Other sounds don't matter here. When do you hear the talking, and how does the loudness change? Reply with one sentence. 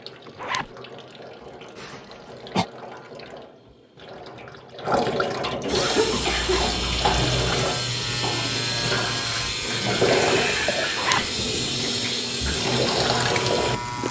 You can't hear the talking here.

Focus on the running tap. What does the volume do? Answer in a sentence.
The volume of the running tap goes up.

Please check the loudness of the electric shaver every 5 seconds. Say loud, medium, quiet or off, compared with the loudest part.
off, loud, loud.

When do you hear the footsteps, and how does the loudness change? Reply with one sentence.
The footsteps can't be heard in this clip.